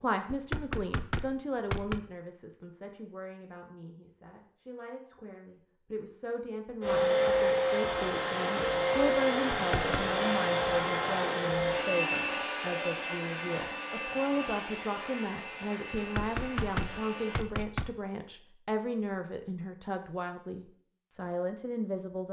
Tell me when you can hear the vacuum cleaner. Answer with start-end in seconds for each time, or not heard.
6.8-17.4.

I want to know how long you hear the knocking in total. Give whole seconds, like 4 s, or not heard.
4 s.